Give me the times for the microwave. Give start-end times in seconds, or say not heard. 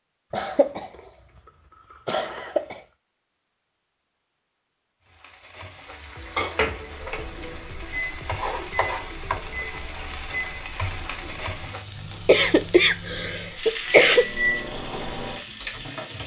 7.0-16.2.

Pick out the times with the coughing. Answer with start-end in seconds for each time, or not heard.
0.3-0.9, 2.0-2.8, 12.2-14.2.